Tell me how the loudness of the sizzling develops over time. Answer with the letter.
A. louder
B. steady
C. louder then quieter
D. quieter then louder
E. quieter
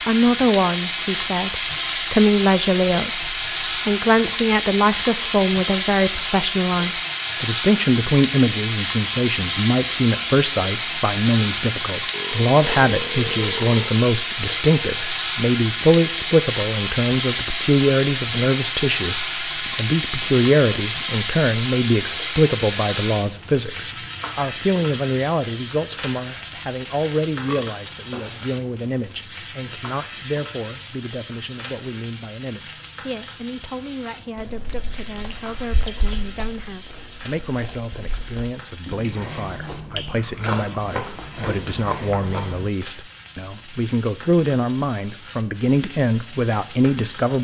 E.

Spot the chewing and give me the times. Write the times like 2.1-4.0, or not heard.
34.4-42.7.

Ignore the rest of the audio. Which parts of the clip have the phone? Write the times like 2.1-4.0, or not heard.
not heard.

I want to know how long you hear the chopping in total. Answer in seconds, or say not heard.
not heard.